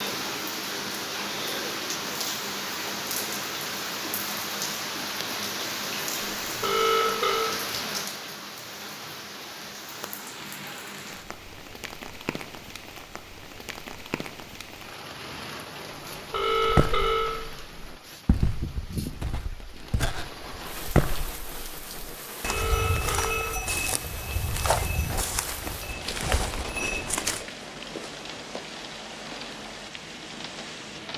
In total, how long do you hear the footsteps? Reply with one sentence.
You can hear the footsteps for 11 seconds altogether.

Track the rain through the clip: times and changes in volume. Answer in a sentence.
You can hear the rain from 0.0 to 31.1 s, getting quieter.